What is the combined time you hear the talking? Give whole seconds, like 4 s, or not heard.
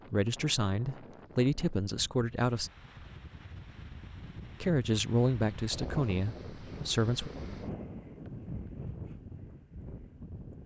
5 s.